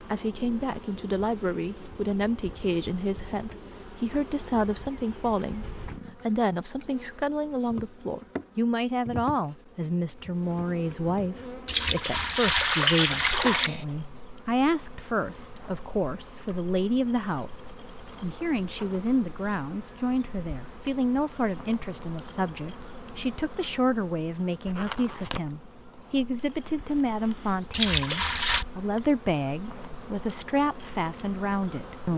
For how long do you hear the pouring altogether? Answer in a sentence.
You can hear the pouring for 3 seconds altogether.